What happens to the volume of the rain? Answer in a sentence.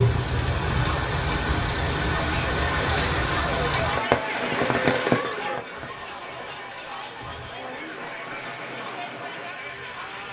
The loudness of the rain goes down.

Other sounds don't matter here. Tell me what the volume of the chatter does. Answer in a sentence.
The volume of the chatter goes down.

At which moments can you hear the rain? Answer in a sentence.
You can hear the rain from 0.0 to 10.2 s.